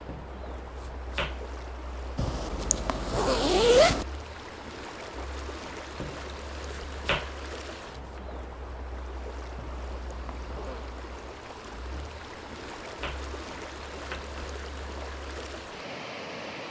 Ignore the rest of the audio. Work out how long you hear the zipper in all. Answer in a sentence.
The zipper can be heard for 3 seconds in total.